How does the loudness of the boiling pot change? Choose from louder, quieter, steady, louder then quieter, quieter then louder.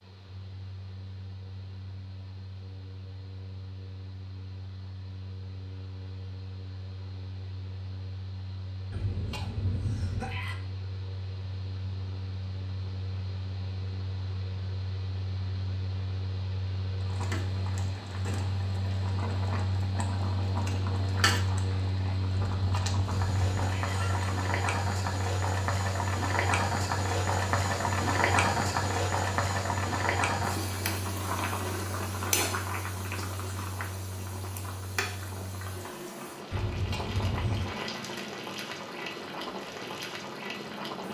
louder then quieter.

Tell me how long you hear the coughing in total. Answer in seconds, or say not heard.
5 s.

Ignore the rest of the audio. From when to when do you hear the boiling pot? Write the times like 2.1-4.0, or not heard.
17.0-41.0.